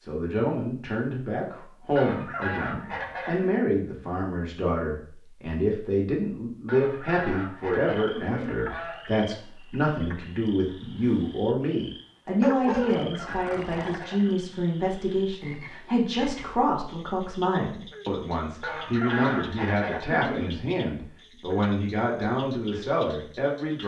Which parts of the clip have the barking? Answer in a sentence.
You can hear the barking from 12.4 to 14.1 s.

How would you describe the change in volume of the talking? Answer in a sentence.
The loudness of the talking stays about the same.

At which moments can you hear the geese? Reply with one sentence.
You can hear the geese from 1.9 to 3.5 s, from 6.7 to 9.1 s, from 12.8 to 14.4 s and from 18.6 to 20.5 s.